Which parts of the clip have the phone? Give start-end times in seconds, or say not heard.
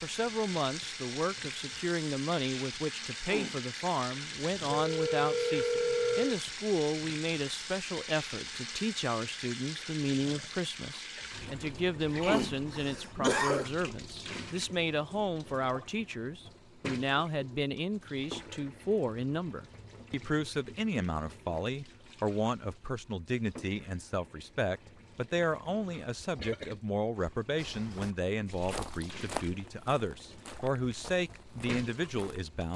4.7-6.4.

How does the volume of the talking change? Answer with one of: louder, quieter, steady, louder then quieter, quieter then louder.
steady.